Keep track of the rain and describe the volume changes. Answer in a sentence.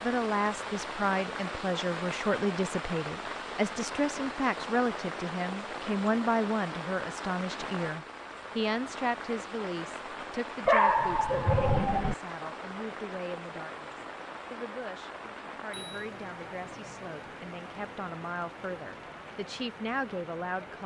The volume of the rain goes down.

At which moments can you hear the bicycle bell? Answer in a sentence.
You can hear the bicycle bell from 15.2 to 16.1 s.